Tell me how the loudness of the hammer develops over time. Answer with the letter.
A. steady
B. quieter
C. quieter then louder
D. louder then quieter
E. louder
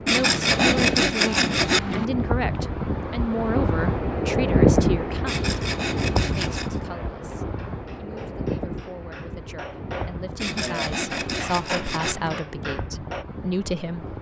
E.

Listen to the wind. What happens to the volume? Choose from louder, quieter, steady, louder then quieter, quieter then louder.
louder then quieter.